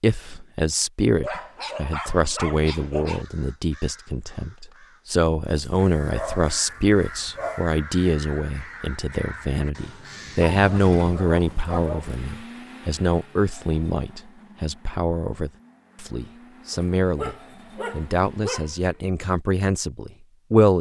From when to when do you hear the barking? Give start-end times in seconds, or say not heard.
1.2-3.2, 5.5-7.7, 10.5-12.2, 16.7-19.0.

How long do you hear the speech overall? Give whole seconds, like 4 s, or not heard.
21 s.